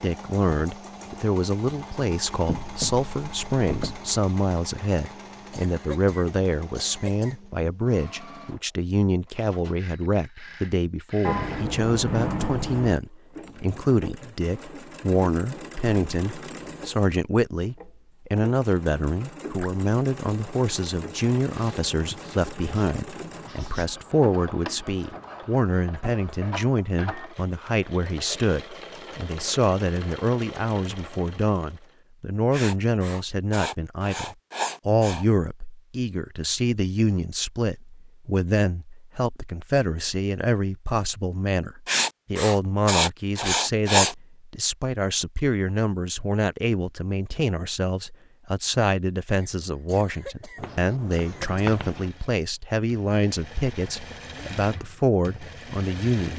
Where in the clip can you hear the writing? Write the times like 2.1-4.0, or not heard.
2.5-4.0, 11.2-13.0, 21.5-23.9, 32.5-35.2, 41.9-44.1, 50.5-52.1.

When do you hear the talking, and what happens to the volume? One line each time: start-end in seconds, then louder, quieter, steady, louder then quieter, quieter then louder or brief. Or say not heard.
0.0-56.3 steady.